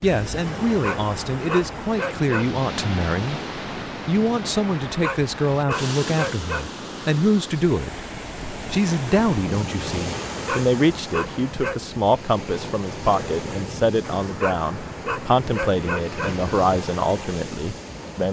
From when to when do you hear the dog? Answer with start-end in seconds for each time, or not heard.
0.7-2.6, 4.7-6.7, 10.1-11.8, 14.0-16.5.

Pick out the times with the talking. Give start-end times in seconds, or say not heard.
0.0-3.4, 4.0-8.0, 8.7-18.2.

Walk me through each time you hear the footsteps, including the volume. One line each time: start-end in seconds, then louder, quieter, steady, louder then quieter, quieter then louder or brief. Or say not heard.
not heard.